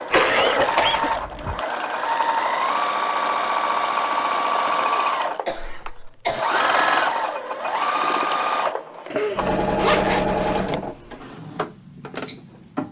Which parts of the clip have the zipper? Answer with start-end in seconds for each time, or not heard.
0.1-0.7, 5.5-6.5, 9.8-10.8.